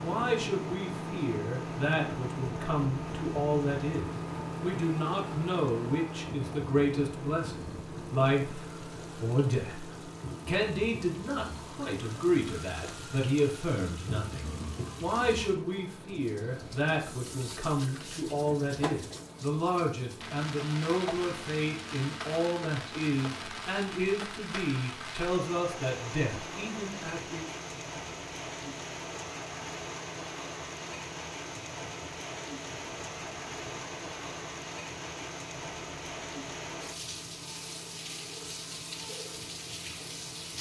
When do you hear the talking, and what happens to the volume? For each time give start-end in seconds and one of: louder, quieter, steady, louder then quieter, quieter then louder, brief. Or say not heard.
0.0-27.4 steady.